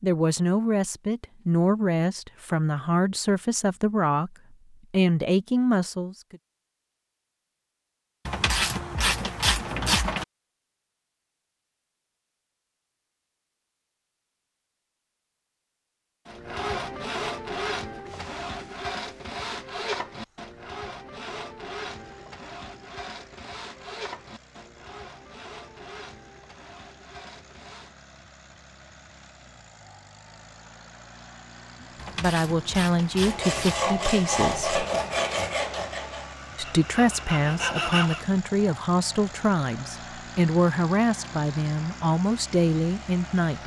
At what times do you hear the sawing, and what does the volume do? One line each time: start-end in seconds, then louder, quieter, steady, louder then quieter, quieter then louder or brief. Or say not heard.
16.2-28.0 quieter
33.2-38.2 quieter then louder.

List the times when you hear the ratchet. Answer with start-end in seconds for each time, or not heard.
8.2-10.2, 31.9-33.8.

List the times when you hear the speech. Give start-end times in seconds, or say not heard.
0.0-4.3, 4.9-6.3, 32.1-34.8, 36.5-43.6.